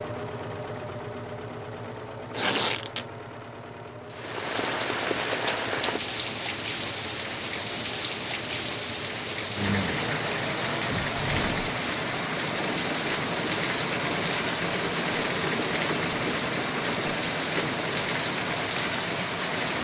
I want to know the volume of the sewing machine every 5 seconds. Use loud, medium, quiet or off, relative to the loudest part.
medium, medium, loud, loud.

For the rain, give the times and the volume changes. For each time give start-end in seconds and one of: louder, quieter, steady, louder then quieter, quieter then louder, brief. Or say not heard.
4.1-19.7 steady.